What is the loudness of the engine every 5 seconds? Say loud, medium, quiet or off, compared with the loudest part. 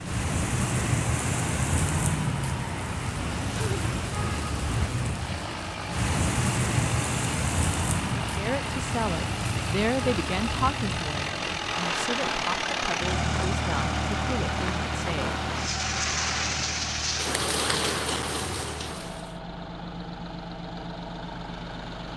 loud, medium, loud, medium, medium.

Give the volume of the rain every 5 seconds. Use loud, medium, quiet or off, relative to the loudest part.
loud, loud, medium, loud, off.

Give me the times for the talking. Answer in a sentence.
You can hear the talking from 8.2 to 15.3 s.